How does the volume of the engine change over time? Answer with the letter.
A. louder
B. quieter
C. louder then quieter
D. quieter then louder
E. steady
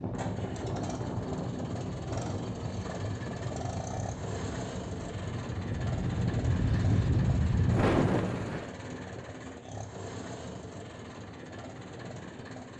B.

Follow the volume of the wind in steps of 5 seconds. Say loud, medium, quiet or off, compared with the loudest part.
quiet, loud, off.